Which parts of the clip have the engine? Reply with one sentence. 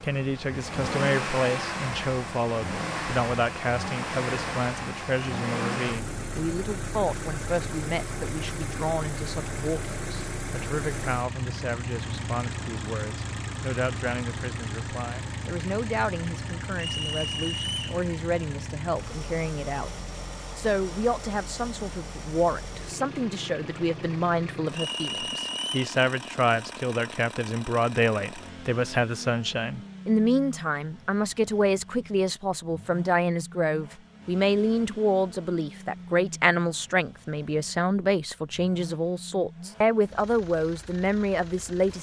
The engine can be heard from 0.0 to 41.9 s.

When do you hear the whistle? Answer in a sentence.
You can hear the whistle from 16.8 to 18.0 s and from 24.7 to 25.8 s.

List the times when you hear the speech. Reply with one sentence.
You can hear the speech from 0.0 to 41.9 s.